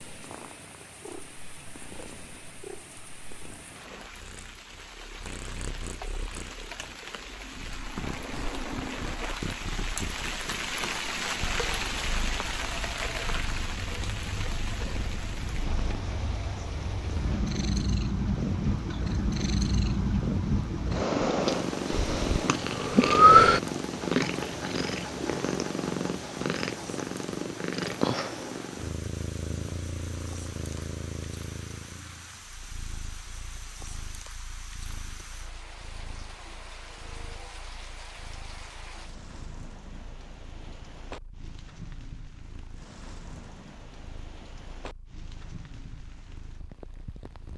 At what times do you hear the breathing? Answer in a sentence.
The breathing can be heard from 21.9 to 23.6 s.